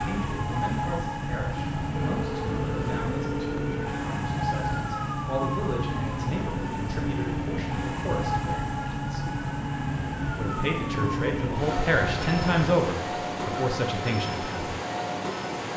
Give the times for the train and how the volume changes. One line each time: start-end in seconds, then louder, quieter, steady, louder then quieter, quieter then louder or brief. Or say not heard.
0.0-15.7 steady.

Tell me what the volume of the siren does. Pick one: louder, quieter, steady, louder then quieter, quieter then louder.
steady.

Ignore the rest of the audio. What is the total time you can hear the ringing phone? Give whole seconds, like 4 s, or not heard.
2 s.